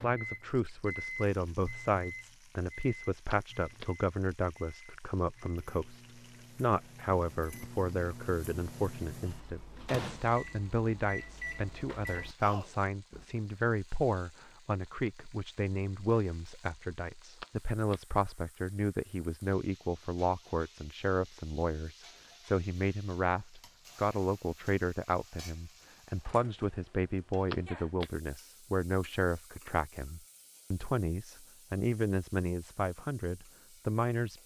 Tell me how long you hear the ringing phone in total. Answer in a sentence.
The ringing phone can be heard for 2 seconds in total.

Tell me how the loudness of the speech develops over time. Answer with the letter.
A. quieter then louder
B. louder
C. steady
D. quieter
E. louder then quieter
C.